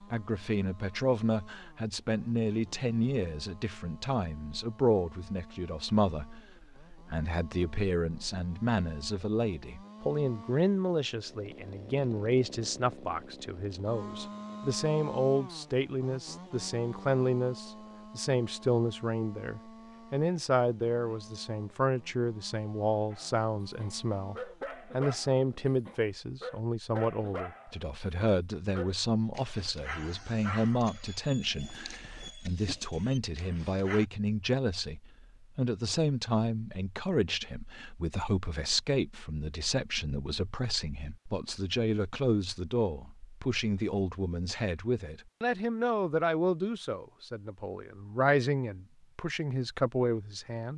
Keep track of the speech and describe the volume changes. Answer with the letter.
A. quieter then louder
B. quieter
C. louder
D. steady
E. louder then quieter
D.